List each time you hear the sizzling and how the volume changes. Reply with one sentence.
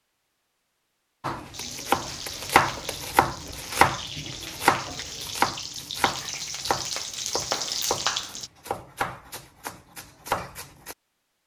The sizzling can be heard from 1.5 to 8.5 s, getting louder.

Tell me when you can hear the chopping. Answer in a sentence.
You can hear the chopping from 1.2 to 10.9 s.